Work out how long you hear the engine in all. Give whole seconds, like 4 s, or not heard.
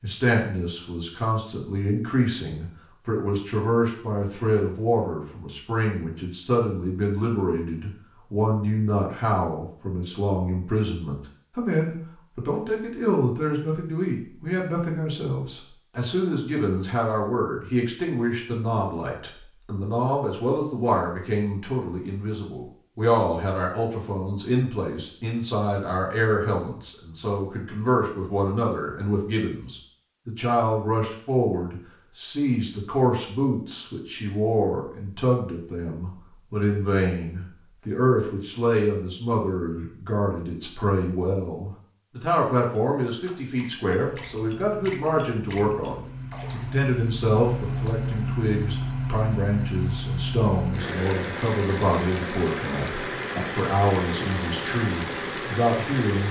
12 s.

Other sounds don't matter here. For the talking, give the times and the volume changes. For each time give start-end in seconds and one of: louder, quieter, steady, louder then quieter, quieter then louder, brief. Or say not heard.
0.0-56.2 steady.